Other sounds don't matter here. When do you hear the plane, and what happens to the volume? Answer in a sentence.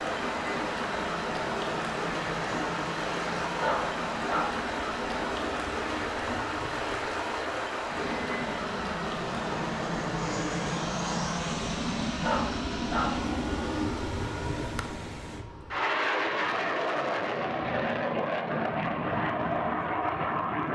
The plane can be heard from 0.0 to 20.6 s, getting louder.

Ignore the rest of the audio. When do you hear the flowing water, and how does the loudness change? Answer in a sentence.
You can hear the flowing water from 0.0 to 15.4 s, getting quieter.